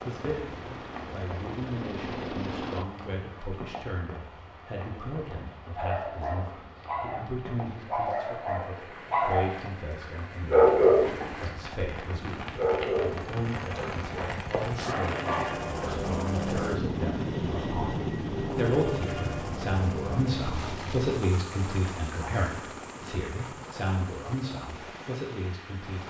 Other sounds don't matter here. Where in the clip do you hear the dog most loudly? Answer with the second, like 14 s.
11 s.